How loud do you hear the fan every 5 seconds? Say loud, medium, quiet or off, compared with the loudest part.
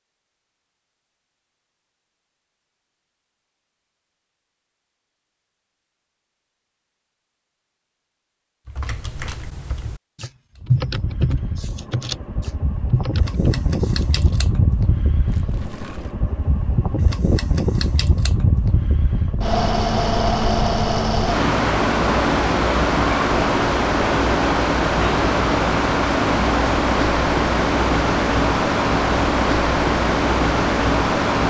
off, off, medium, medium, loud, loud, loud.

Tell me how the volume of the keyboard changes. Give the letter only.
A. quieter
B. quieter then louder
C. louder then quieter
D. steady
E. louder
C.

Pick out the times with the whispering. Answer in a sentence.
You can't hear the whispering here.